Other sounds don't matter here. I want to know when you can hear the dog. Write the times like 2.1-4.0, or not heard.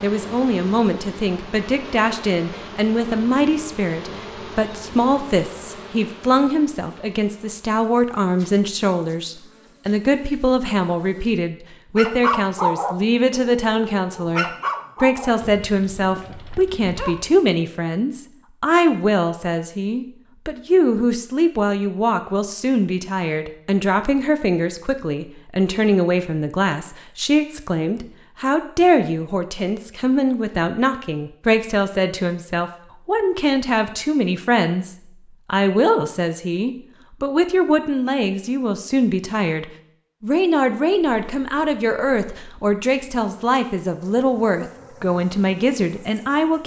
11.9-17.4.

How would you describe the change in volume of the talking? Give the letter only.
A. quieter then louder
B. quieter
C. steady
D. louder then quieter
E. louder
C.